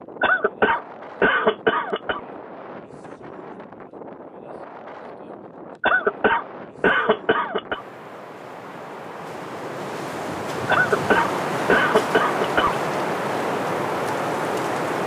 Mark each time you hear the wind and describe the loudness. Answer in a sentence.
The wind can be heard from 0.0 to 15.0 s, getting louder.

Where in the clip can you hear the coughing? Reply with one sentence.
You can hear the coughing from 0.2 to 2.2 s, from 5.8 to 7.8 s and from 10.7 to 12.8 s.